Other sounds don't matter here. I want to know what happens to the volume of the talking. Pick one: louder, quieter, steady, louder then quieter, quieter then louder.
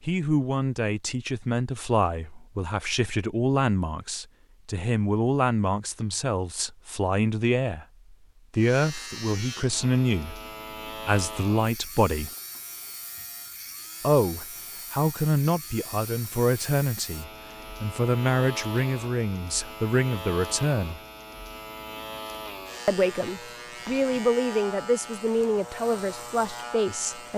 steady.